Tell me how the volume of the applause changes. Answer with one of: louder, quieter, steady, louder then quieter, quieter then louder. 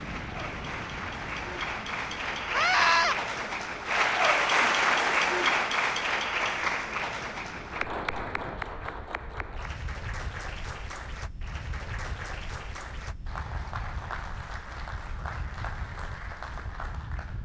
louder then quieter.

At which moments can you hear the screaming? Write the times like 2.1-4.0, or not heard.
2.5-3.1.